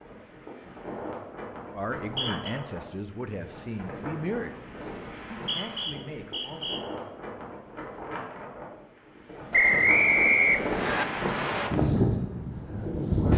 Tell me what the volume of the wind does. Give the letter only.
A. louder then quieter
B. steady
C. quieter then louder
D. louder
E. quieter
D.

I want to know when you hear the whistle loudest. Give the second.
10 s.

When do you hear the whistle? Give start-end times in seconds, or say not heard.
2.0-2.5, 5.3-6.8, 9.5-11.1.